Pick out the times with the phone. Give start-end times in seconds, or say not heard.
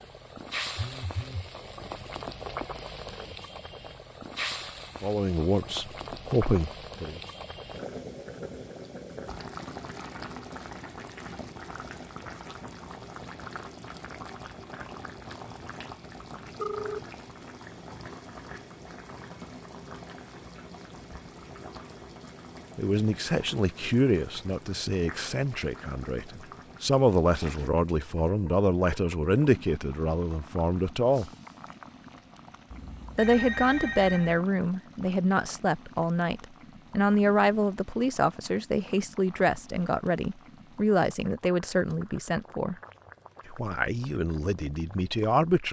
0.8-1.5, 16.6-17.0, 32.7-34.5.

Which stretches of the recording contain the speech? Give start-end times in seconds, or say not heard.
5.0-7.2, 22.8-31.3, 33.1-42.8, 43.5-45.6.